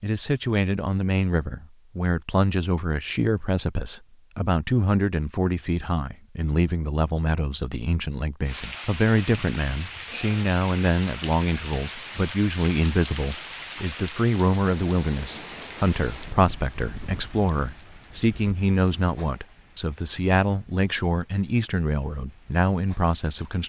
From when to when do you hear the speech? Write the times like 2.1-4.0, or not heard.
0.0-23.6.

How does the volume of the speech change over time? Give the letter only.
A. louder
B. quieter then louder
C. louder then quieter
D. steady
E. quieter
D.